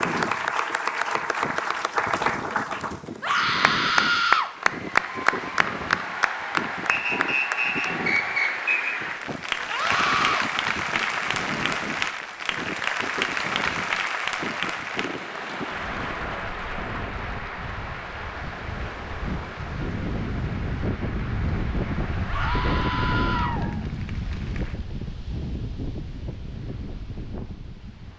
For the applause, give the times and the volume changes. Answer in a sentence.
You can hear the applause from 0.0 to 24.8 s, getting quieter.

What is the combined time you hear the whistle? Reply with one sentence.
You can hear the whistle for 2 seconds altogether.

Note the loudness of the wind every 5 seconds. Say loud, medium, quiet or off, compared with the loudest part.
medium, medium, medium, medium, loud, medium.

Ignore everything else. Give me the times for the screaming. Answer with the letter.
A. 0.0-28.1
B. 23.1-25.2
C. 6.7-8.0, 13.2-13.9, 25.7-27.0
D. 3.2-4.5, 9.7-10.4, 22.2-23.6
D.